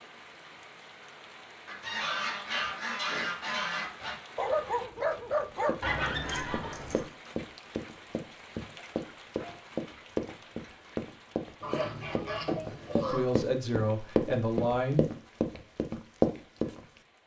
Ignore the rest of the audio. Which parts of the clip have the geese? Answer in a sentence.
You can hear the geese from 1.6 to 4.2 s, from 5.8 to 7.0 s and from 11.6 to 13.2 s.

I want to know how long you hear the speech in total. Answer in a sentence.
You can hear the speech for 2 seconds altogether.